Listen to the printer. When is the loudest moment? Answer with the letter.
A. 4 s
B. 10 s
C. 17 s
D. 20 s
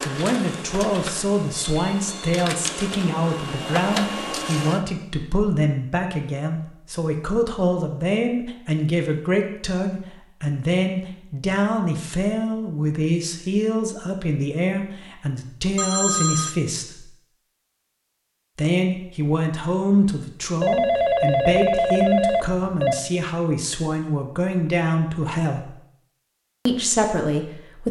A.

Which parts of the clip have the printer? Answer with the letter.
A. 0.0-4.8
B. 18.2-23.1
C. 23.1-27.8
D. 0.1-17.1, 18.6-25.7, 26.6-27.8
A.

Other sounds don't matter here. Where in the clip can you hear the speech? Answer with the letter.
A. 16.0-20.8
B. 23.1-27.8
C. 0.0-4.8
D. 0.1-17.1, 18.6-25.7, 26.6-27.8
D.